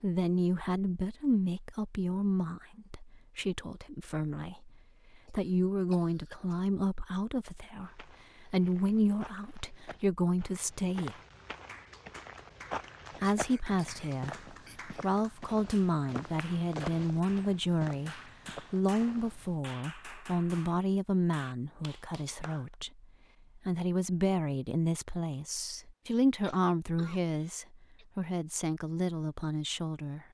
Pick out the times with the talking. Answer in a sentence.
You can hear the talking from 0.0 to 11.2 s and from 13.2 to 30.2 s.